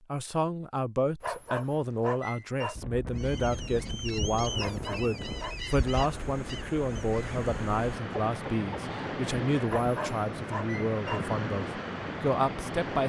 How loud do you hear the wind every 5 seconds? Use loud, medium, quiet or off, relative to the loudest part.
medium, loud, loud.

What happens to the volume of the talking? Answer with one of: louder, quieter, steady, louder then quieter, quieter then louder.
steady.